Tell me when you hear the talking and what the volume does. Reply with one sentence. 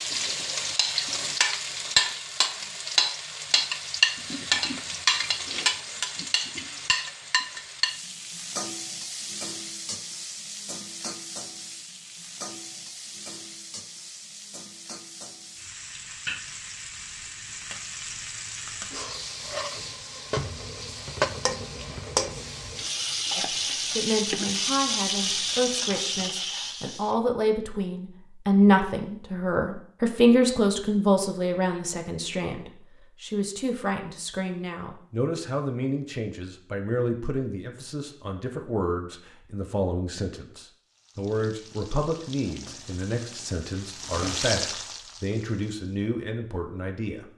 The talking can be heard from 23.4 to 47.2 s, getting louder then quieter.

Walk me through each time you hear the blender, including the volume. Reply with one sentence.
The blender can't be heard in this clip.